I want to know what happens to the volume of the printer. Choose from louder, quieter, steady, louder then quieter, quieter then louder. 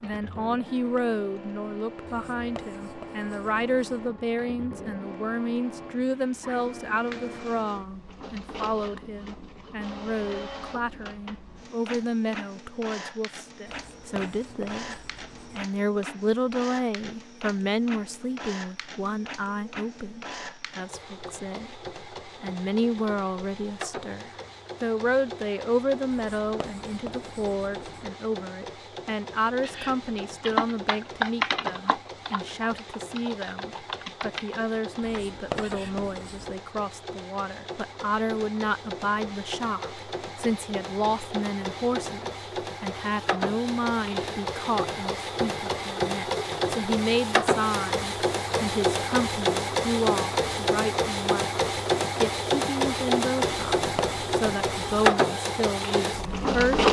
louder.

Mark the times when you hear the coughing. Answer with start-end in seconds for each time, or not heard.
not heard.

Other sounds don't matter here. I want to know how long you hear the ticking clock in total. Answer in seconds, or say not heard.
not heard.